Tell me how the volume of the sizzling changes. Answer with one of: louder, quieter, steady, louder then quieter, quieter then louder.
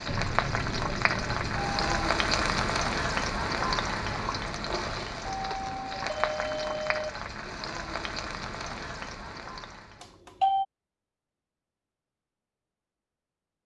quieter.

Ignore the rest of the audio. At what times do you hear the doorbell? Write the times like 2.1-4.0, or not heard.
0.1-2.1, 5.2-7.1, 10.0-10.7.